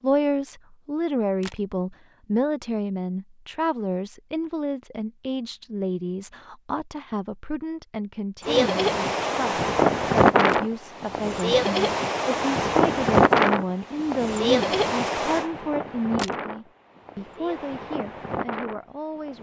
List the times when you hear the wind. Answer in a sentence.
You can hear the wind from 8.4 to 19.3 s.